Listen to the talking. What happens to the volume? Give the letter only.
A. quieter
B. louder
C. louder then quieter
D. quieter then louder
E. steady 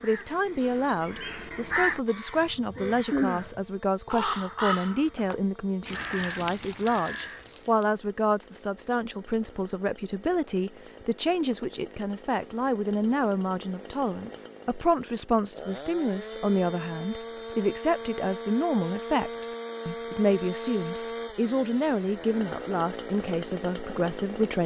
E.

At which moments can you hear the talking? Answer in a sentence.
You can hear the talking from 0.0 to 24.6 s.